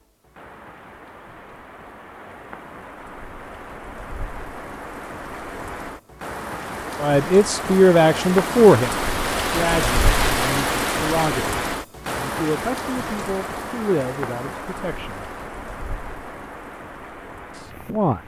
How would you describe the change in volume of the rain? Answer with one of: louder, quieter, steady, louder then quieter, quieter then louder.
louder then quieter.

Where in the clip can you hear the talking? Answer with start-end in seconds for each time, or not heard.
7.0-15.3, 17.5-18.2.